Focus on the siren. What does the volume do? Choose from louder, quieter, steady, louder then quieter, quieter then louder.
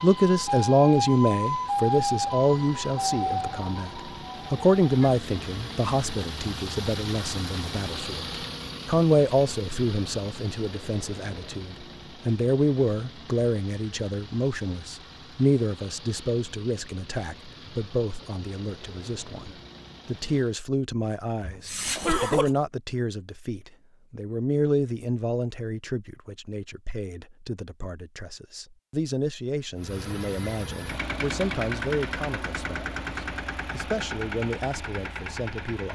quieter.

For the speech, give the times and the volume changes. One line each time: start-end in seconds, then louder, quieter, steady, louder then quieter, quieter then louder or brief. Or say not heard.
0.0-35.9 quieter.